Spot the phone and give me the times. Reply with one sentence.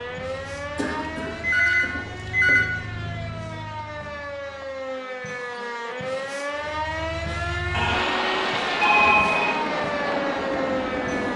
You can hear the phone from 0.8 to 2.7 s and from 7.7 to 9.6 s.